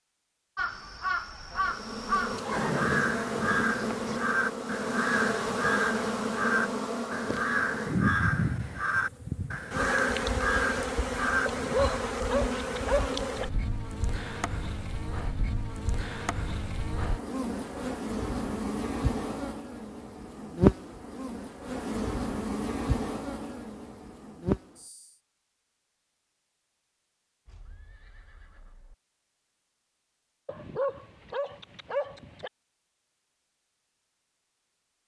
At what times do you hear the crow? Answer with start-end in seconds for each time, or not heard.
0.6-11.5.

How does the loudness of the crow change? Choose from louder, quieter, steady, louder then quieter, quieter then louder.
steady.